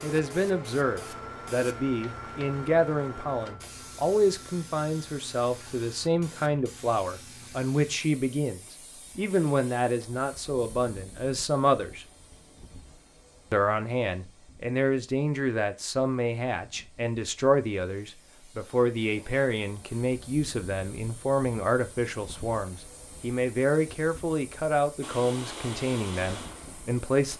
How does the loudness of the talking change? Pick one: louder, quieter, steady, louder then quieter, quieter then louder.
steady.